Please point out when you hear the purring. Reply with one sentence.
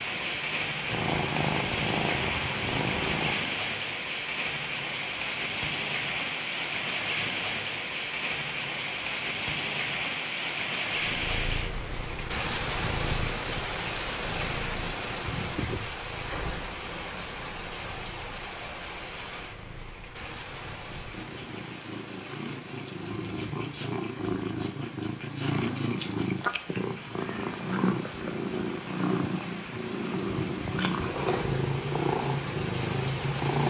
You can hear the purring from 0.0 to 3.6 s and from 11.1 to 33.6 s.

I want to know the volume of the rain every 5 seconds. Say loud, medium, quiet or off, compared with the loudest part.
loud, loud, loud, medium, quiet, quiet, medium.